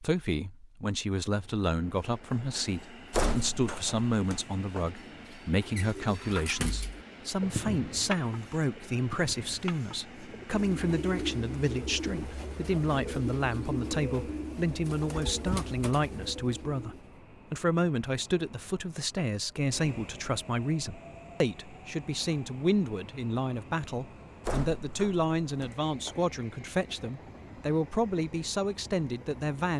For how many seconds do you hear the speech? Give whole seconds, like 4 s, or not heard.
30 s.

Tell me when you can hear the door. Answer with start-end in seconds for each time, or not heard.
3.1-4.9, 24.4-26.2.